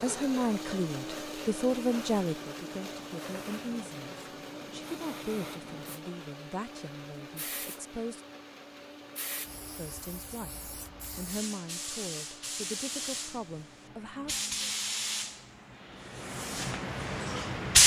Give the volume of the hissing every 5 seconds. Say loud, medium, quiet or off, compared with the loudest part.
quiet, quiet, medium, loud.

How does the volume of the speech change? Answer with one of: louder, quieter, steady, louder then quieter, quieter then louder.
quieter.